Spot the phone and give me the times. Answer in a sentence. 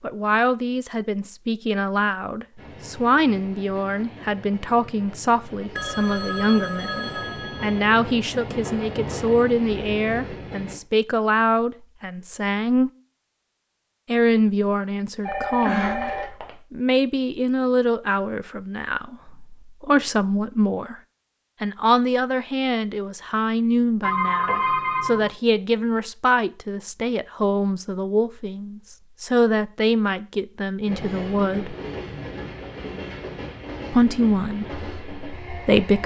You can hear the phone from 5.8 to 7.8 s, from 15.2 to 16.5 s and from 24.0 to 25.3 s.